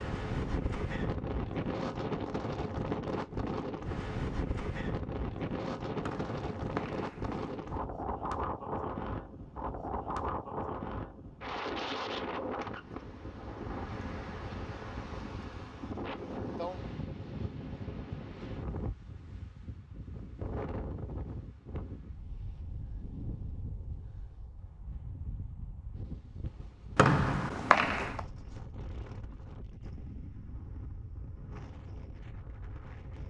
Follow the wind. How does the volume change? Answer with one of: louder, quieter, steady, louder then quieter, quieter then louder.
quieter.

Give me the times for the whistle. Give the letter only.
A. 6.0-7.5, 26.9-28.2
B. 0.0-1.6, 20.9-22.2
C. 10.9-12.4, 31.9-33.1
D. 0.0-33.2
A.